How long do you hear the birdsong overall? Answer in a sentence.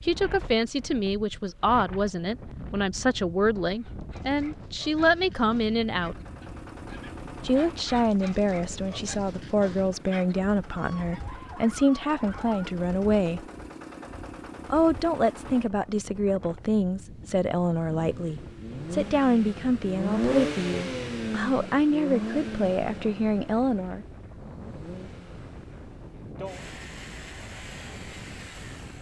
You can't hear the birdsong here.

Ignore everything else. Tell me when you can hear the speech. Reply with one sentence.
The speech can be heard from 0.0 to 6.2 s, from 7.4 to 13.4 s and from 14.7 to 24.1 s.